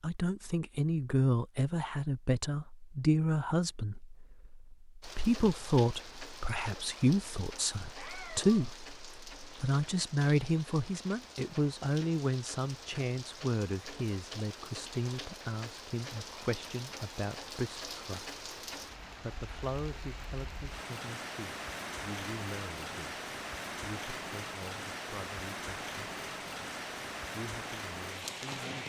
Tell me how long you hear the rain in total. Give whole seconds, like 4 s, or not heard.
24 s.